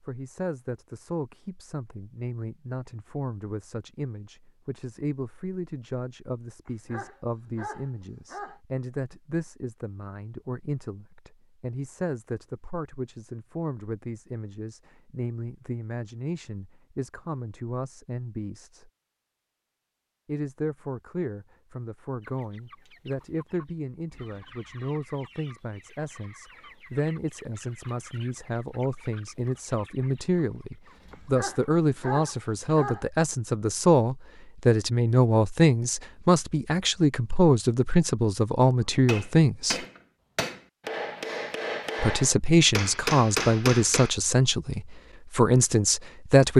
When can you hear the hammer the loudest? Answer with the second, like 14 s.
43 s.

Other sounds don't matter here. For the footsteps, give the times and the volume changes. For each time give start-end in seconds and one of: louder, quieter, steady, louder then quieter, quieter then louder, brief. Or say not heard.
not heard.